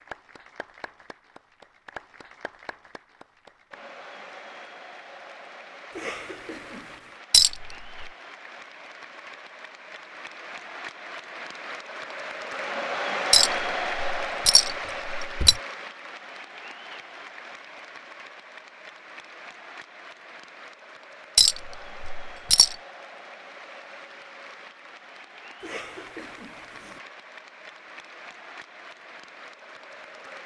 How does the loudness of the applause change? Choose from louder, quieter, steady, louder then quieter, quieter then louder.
louder then quieter.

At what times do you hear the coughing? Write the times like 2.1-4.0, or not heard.
5.9-7.2, 25.6-27.0.